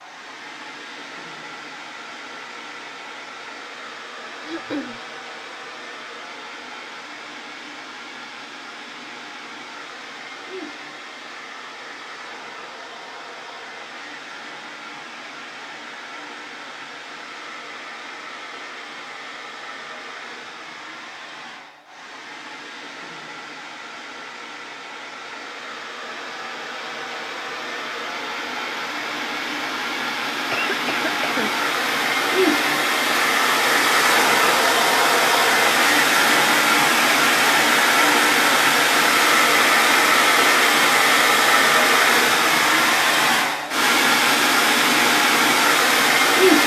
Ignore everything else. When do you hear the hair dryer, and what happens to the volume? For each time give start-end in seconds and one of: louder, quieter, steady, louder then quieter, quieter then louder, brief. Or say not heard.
0.0-46.6 louder.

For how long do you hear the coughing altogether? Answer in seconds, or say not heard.
2 s.